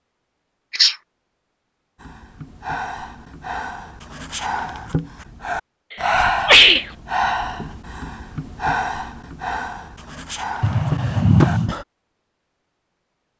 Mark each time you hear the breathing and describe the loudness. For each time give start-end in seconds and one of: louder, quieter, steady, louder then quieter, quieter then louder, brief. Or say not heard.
2.0-11.8 louder then quieter.